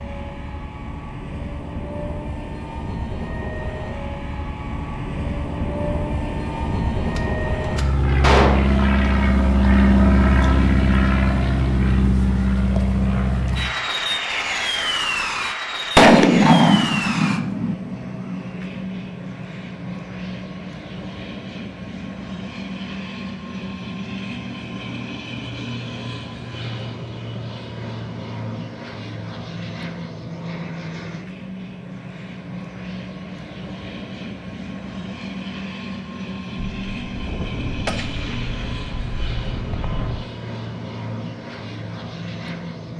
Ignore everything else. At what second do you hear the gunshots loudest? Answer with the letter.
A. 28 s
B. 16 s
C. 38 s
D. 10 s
B.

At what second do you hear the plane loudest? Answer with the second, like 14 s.
10 s.